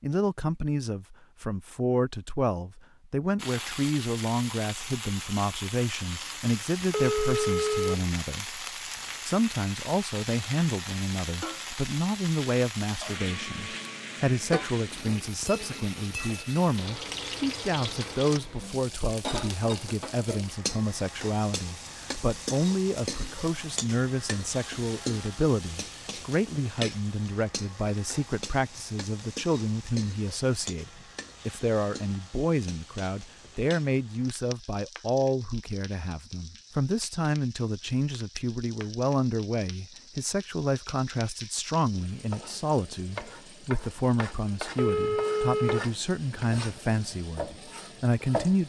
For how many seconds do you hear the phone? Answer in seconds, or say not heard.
2 s.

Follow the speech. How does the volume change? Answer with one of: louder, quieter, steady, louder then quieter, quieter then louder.
steady.